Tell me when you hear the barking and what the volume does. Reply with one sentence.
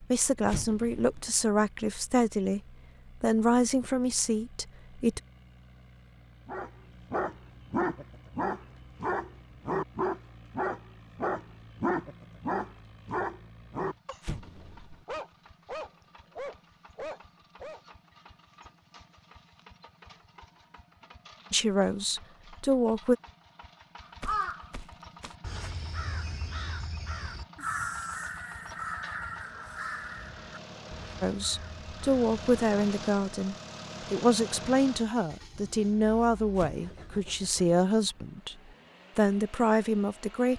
You can hear the barking from 6.5 to 17.8 s, getting quieter.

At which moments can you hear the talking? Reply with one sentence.
You can hear the talking from 0.0 to 5.2 s, from 21.5 to 23.1 s, from 31.2 to 38.5 s and from 39.1 to 40.5 s.